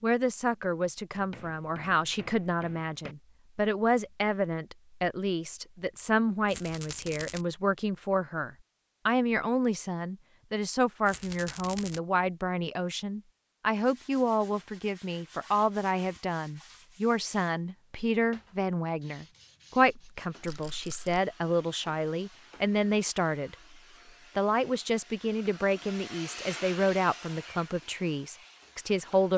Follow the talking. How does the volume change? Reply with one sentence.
The loudness of the talking stays about the same.